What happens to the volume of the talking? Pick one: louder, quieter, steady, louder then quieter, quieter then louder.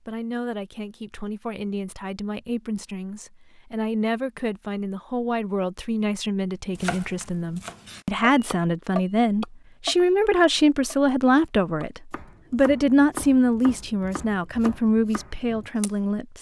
louder.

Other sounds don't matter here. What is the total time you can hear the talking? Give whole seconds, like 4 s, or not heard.
16 s.